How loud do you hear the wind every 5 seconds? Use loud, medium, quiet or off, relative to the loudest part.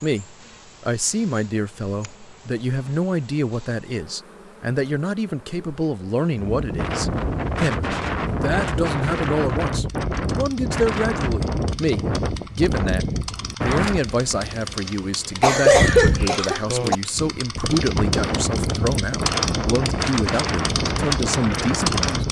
off, loud, loud, loud, loud.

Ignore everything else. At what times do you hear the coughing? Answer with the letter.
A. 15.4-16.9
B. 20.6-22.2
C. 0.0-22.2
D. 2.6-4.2
A.